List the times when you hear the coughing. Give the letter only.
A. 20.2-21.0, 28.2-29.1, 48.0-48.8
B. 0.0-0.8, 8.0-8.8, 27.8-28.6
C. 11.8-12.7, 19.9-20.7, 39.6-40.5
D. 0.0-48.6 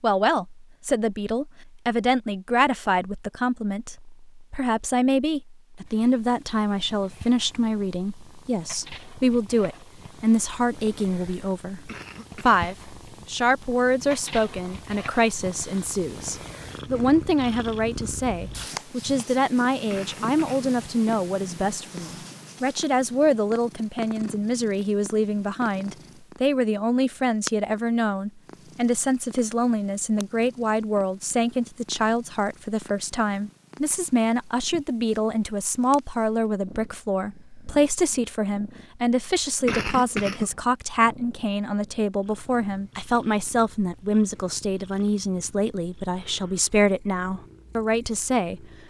C.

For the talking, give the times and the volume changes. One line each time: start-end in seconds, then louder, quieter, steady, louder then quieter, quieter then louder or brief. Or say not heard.
0.0-48.6 steady.